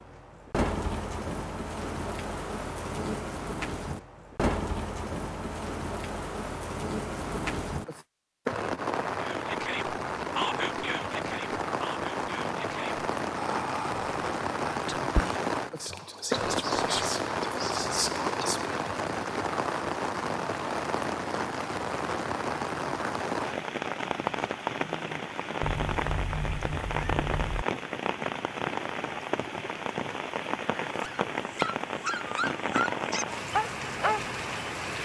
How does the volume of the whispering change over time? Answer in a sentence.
The loudness of the whispering goes down, then up.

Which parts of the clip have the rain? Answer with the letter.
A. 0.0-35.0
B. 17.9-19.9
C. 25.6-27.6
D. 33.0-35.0
A.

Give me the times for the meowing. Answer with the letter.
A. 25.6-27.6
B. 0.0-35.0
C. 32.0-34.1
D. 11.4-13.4
A.